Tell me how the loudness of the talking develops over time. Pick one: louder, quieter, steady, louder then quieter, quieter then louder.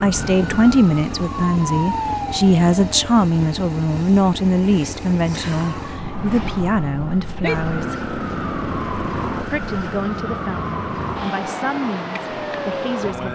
quieter.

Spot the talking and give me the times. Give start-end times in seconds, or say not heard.
0.0-8.1, 9.5-13.3.